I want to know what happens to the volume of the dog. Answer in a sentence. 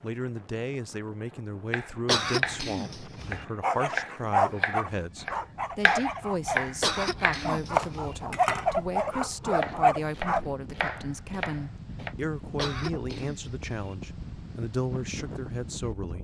The volume of the dog goes down, then up.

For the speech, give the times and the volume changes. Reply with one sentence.
The speech can be heard from 0.0 to 16.1 s, at a steady volume.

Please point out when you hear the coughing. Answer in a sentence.
The coughing can be heard from 2.0 to 3.5 s, from 6.8 to 8.2 s and from 12.6 to 13.9 s.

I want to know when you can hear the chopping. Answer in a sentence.
The chopping can be heard from 1.7 to 12.2 s.